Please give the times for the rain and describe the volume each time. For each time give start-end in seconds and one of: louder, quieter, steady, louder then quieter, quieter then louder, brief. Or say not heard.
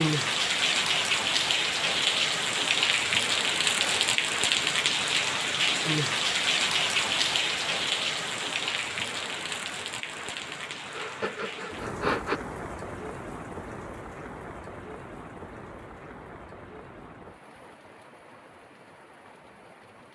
0.0-20.0 quieter.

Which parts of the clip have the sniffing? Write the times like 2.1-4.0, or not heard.
3.8-4.2, 10.9-12.4.